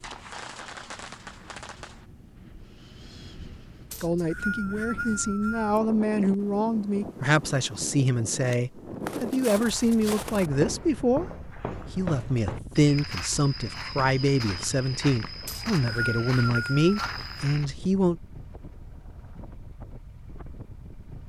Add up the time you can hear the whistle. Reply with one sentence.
You can hear the whistle for 3 seconds altogether.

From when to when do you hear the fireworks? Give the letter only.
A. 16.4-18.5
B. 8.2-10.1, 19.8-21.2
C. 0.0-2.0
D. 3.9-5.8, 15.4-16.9
C.